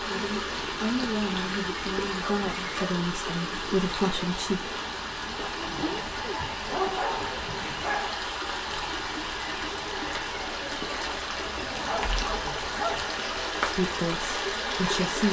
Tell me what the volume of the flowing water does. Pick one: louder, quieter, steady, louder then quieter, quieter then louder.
steady.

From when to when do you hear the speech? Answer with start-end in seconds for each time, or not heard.
0.0-4.7, 13.6-15.2.